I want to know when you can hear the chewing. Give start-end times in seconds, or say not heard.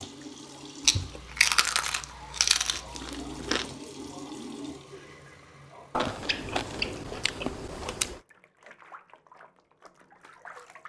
0.8-3.7, 6.0-8.2.